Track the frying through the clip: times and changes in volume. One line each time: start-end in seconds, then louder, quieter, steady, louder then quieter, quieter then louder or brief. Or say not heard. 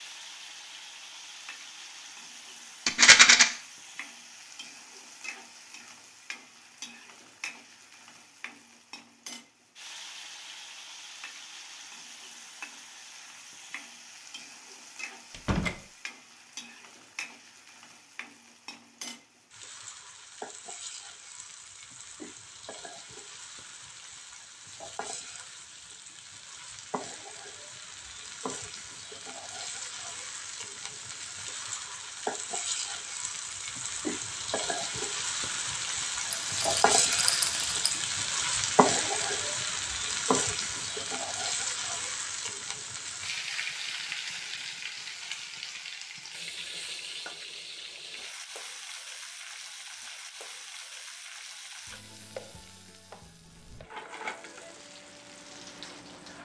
0.0-56.4 louder then quieter.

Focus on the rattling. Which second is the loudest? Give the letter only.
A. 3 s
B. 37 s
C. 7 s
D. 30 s
A.